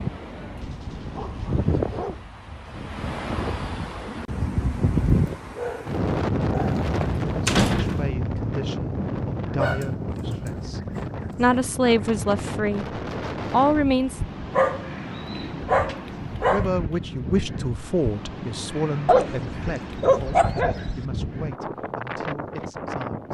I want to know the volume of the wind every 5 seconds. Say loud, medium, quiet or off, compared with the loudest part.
loud, loud, medium, medium, medium.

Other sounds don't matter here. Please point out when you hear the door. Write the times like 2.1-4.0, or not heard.
6.5-8.1.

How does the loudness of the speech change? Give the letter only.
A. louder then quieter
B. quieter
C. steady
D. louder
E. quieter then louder
A.